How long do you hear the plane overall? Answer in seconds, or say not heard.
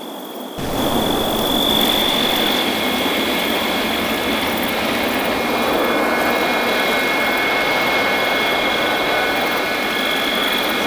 9 s.